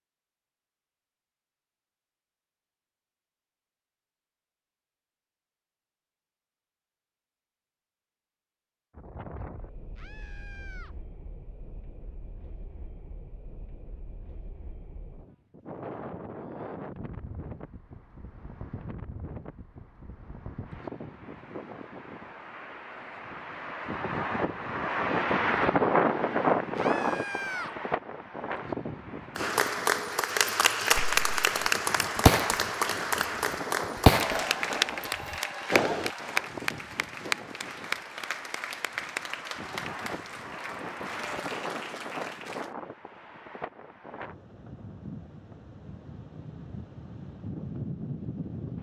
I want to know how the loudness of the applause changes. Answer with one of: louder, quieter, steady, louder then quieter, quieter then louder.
quieter.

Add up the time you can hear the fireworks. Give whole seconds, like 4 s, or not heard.
5 s.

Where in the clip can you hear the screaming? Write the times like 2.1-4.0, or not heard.
9.9-10.9, 26.8-27.8.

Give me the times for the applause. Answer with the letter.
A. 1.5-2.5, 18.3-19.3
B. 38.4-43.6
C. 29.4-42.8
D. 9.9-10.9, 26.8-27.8
C.